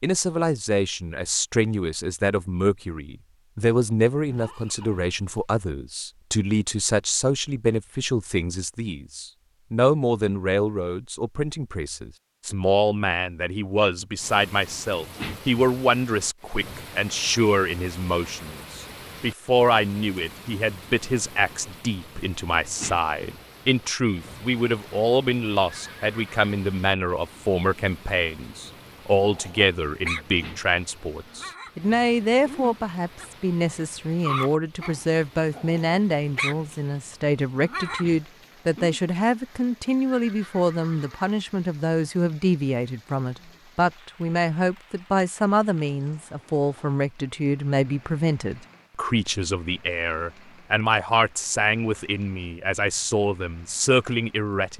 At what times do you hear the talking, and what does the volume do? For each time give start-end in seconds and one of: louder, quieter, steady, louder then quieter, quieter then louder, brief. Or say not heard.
0.0-54.7 steady.